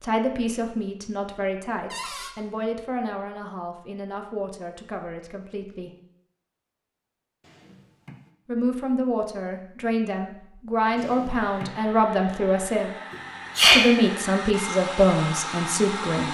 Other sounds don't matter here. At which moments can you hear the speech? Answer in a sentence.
You can hear the speech from 0.0 to 5.9 s, from 8.4 to 12.9 s and from 13.6 to 16.2 s.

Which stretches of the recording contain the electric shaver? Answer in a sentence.
You can't hear the electric shaver here.